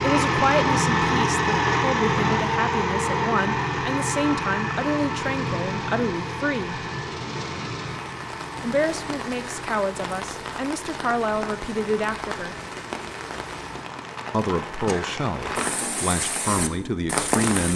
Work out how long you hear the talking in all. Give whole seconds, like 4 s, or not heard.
14 s.